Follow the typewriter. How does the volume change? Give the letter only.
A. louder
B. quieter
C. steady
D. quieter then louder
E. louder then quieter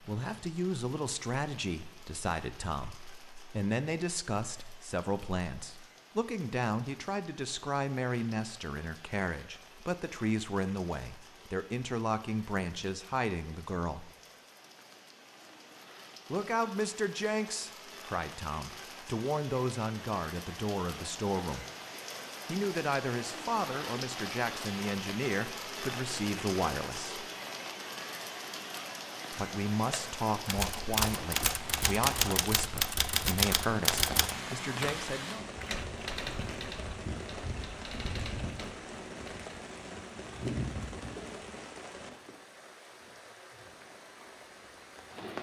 B.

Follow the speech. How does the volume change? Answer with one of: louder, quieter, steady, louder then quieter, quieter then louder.
steady.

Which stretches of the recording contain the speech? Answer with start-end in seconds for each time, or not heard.
0.0-14.1, 16.3-21.6, 22.4-27.2, 29.3-35.5.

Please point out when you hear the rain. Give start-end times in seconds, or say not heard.
0.0-45.3.